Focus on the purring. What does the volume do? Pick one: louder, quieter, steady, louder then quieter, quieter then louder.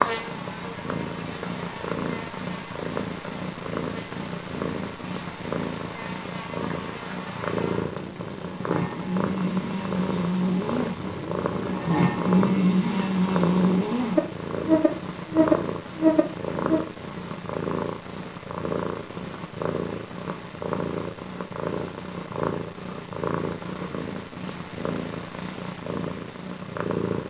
steady.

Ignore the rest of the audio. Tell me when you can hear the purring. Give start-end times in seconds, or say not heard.
0.0-27.2.